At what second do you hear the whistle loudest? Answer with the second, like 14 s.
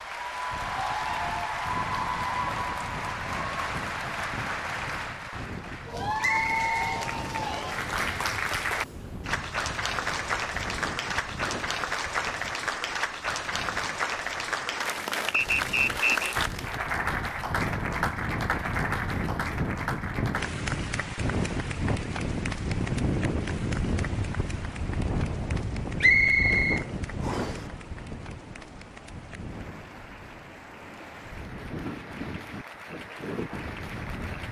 26 s.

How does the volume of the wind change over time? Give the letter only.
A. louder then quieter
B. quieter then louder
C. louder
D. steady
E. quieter
A.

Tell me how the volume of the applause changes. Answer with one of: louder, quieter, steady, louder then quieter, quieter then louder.
quieter.